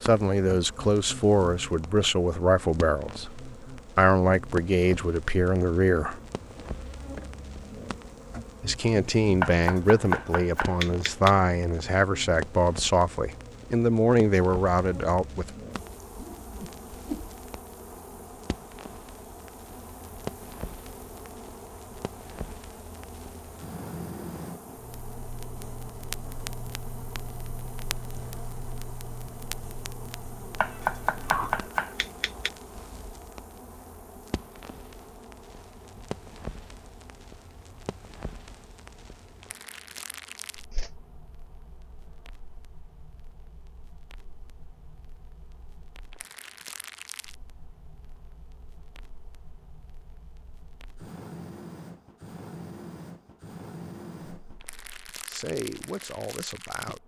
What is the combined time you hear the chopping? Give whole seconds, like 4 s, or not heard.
4 s.